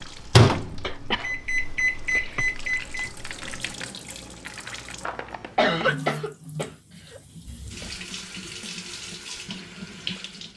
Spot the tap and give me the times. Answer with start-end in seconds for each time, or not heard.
0.0-10.5.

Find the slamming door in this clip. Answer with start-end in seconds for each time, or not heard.
not heard.